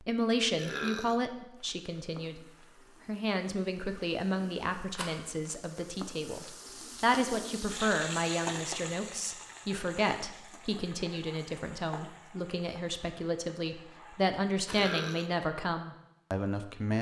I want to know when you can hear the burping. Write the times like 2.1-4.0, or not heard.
0.6-1.2, 14.7-15.3.